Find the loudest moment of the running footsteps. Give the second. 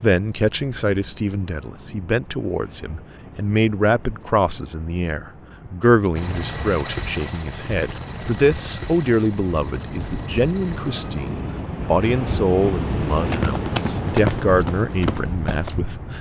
14 s.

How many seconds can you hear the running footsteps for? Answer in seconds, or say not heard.
3 s.